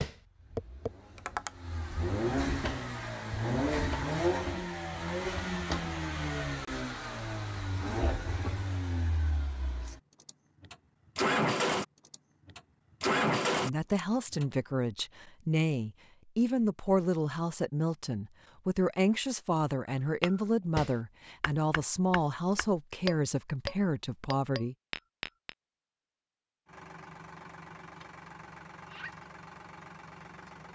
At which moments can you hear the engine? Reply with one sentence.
The engine can be heard from 0.2 to 14.4 s and from 26.6 to 30.7 s.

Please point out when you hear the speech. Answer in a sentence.
You can hear the speech from 13.6 to 24.8 s.